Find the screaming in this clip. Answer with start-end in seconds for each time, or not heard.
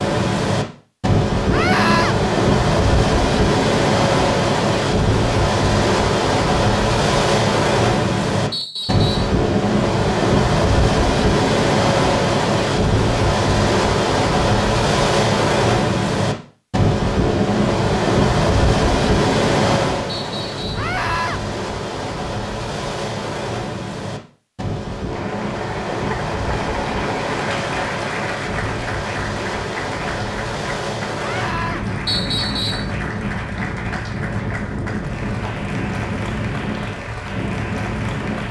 1.5-2.1, 20.8-21.4, 31.1-31.9.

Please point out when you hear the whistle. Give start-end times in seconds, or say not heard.
8.5-9.3, 20.1-20.7, 32.0-32.9.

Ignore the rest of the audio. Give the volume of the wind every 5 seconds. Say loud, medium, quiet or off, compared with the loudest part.
loud, loud, loud, loud, medium, medium, medium, medium.